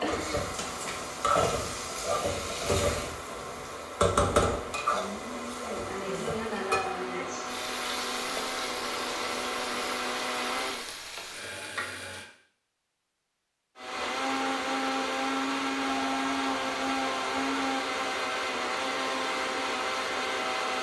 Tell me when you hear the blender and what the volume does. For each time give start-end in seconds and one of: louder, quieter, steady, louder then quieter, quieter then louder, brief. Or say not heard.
0.0-10.9 louder
13.8-20.7 steady.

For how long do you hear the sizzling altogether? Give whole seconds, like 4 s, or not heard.
12 s.